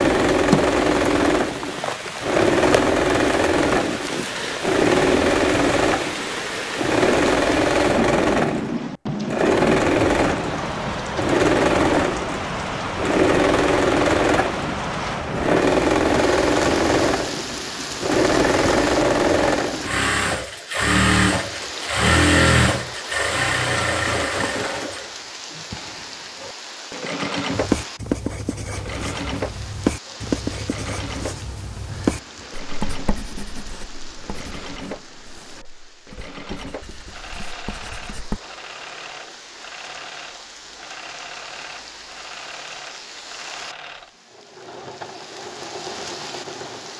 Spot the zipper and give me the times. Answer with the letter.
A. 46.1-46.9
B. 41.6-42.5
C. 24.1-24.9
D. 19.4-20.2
C.